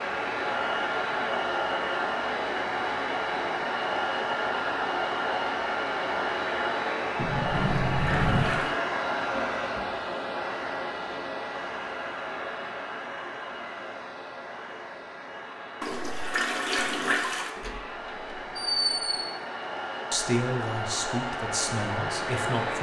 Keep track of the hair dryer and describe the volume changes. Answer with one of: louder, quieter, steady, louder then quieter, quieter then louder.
quieter then louder.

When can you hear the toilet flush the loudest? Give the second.
17 s.